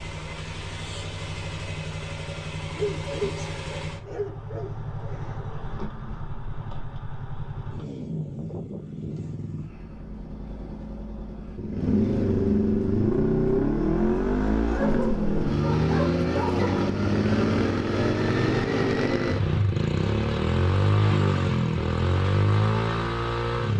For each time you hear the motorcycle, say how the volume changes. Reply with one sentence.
You can hear the motorcycle from 0.0 to 23.7 s, getting louder.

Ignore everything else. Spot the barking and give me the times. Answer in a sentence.
The barking can be heard from 2.7 to 5.2 s and from 14.7 to 16.9 s.